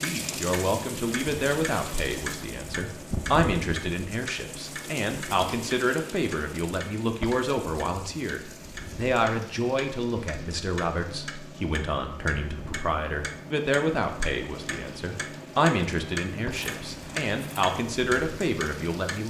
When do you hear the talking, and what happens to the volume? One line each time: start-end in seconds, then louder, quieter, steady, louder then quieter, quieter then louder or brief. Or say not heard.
0.0-19.2 steady.